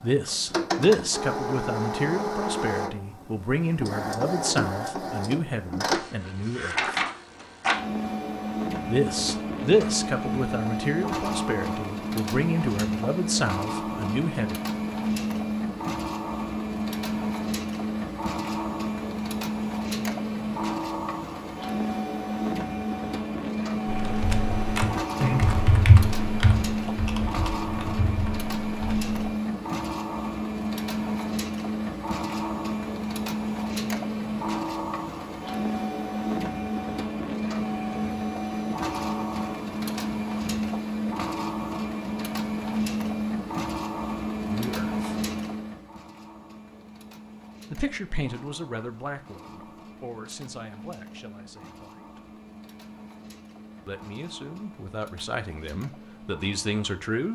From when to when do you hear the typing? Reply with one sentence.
The typing can be heard from 23.9 to 29.1 s.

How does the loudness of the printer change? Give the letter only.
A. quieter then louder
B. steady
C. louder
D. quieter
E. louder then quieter
D.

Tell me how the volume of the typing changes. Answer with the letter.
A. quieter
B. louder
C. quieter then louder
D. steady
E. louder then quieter
E.